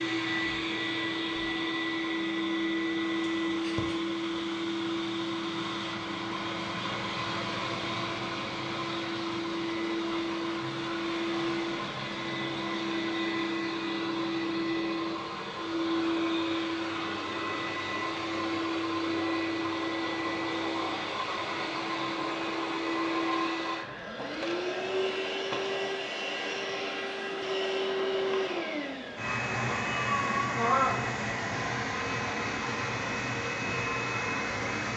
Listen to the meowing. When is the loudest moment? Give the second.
31 s.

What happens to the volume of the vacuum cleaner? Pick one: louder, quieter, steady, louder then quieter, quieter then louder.
steady.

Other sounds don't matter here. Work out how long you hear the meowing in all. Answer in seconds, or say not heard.
2 s.